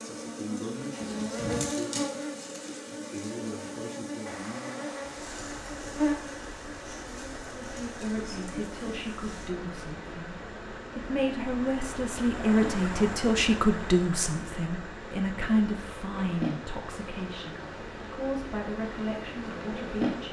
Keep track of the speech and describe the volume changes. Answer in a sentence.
The volume of the speech goes up, then down.